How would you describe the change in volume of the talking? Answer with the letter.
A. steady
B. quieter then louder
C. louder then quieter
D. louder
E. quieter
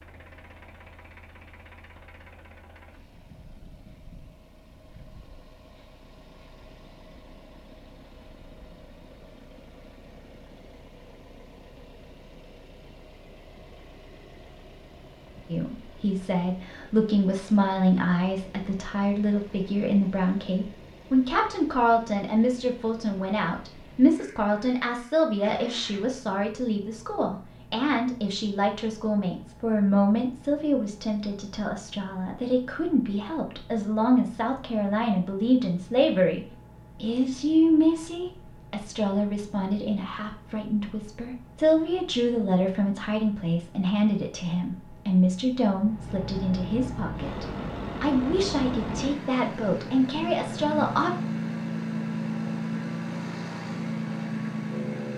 A.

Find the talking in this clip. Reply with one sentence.
You can hear the talking from 15.4 to 51.1 s.